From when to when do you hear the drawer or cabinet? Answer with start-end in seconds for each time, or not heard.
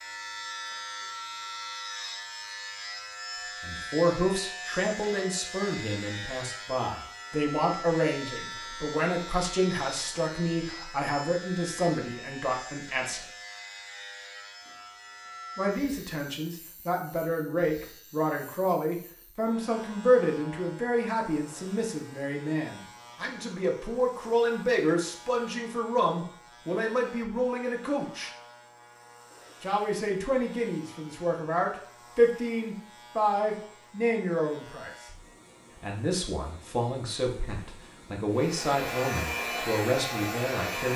not heard.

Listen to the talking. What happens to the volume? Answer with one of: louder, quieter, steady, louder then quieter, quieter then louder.
steady.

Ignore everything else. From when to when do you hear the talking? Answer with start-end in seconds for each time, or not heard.
3.6-13.2, 15.6-28.3, 29.6-35.0, 35.8-40.9.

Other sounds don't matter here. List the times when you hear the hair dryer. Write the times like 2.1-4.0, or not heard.
38.3-40.9.